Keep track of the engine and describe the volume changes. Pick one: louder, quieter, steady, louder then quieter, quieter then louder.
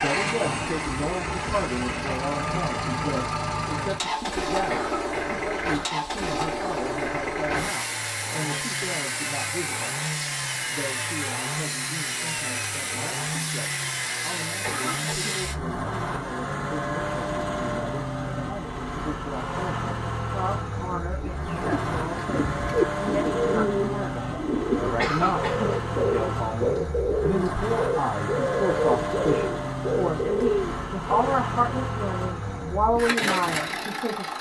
steady.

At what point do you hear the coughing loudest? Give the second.
25 s.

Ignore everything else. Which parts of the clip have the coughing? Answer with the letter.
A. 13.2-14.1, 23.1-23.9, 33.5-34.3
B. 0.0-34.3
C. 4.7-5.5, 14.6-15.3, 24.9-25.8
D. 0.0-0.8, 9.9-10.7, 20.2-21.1
C.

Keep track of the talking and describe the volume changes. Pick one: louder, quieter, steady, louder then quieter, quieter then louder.
quieter then louder.